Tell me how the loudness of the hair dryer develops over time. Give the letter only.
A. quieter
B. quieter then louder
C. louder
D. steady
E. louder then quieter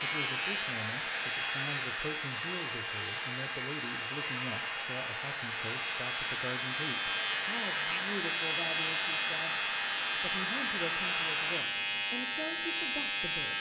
D.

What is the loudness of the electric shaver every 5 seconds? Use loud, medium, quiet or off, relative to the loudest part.
medium, loud, loud.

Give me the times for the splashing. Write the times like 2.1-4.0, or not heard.
not heard.